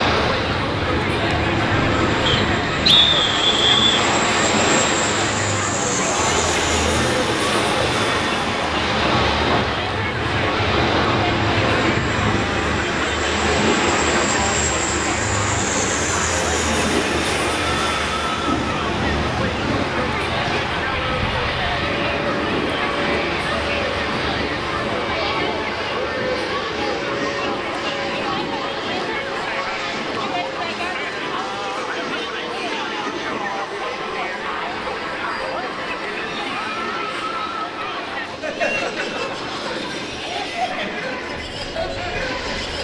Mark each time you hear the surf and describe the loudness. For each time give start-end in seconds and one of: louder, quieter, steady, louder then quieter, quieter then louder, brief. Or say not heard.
0.0-42.8 quieter.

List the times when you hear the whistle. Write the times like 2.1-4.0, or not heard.
2.2-4.0.